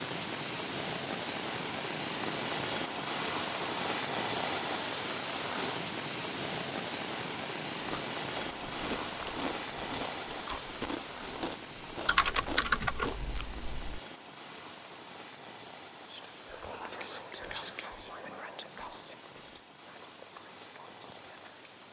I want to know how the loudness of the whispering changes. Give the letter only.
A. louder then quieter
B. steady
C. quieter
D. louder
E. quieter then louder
C.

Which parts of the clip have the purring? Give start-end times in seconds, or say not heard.
not heard.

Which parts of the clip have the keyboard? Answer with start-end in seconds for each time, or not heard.
12.1-14.0.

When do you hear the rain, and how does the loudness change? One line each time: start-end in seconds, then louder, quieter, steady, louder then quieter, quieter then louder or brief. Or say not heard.
0.0-21.8 quieter.